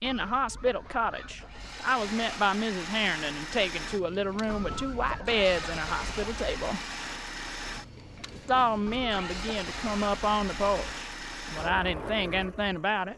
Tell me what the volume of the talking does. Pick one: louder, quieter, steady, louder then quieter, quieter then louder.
steady.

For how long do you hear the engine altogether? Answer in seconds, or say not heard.
12 s.